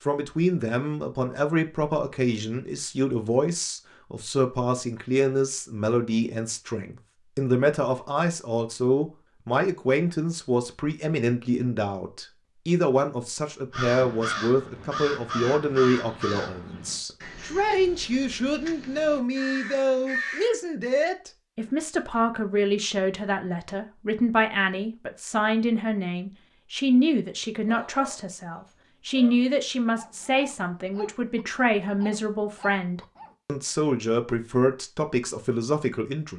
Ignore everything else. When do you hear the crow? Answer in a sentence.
You can hear the crow from 13.7 to 20.6 s.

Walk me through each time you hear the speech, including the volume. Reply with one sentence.
You can hear the speech from 0.0 to 36.3 s, at a steady volume.